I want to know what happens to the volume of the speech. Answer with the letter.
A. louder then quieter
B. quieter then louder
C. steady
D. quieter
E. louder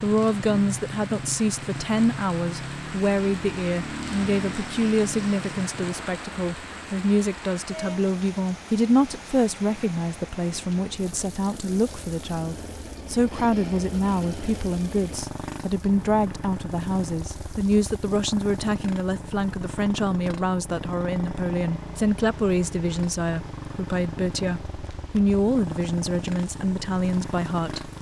C.